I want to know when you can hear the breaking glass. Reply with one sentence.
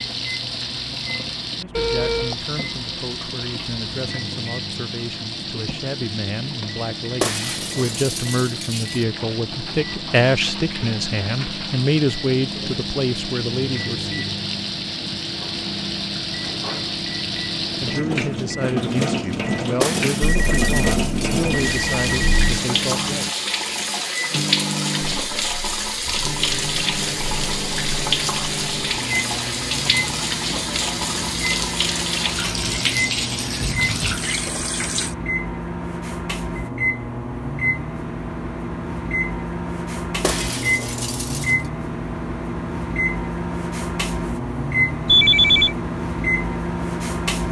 The breaking glass can be heard from 7.2 to 9.1 s, from 19.8 to 21.6 s and from 40.2 to 41.5 s.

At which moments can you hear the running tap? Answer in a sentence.
You can hear the running tap from 0.0 to 35.1 s.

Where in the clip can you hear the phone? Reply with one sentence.
The phone can be heard from 1.7 to 2.4 s, from 20.2 to 22.6 s and from 45.0 to 45.8 s.